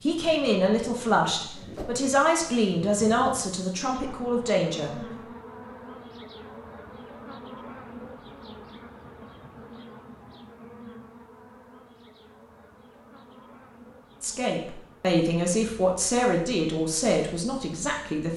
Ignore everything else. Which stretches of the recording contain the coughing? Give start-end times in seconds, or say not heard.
not heard.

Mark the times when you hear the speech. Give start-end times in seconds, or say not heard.
0.0-4.9, 14.2-18.3.